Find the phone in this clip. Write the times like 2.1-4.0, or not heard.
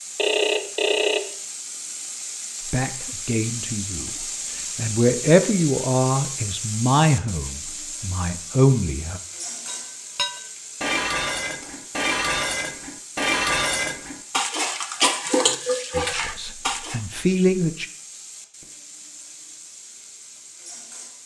0.1-1.2.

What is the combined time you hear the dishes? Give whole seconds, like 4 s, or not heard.
7 s.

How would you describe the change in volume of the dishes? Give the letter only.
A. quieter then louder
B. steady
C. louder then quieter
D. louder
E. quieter
B.